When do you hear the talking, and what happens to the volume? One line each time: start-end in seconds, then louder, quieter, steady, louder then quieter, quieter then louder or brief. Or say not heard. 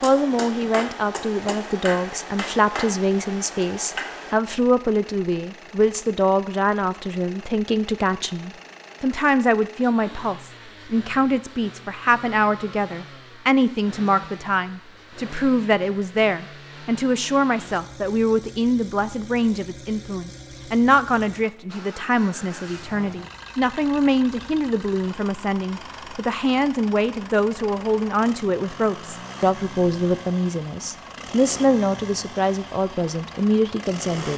0.0-34.3 steady.